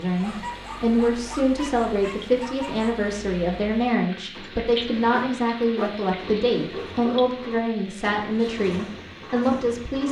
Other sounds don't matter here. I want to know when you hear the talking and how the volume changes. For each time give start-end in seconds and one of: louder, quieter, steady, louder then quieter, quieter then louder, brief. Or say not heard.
0.0-10.0 steady.